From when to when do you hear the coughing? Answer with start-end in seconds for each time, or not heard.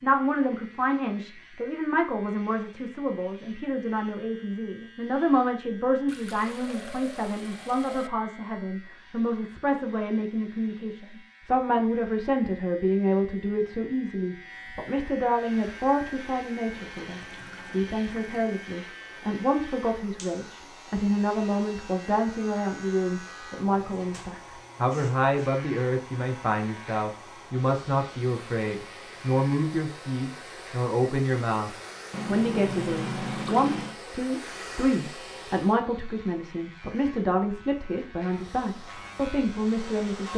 not heard.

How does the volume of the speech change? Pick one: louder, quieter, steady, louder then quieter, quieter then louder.
steady.